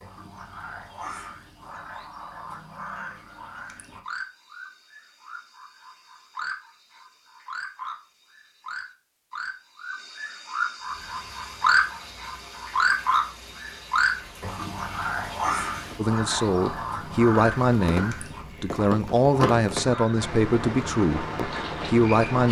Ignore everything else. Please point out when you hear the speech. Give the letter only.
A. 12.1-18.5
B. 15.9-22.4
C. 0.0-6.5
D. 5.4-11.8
B.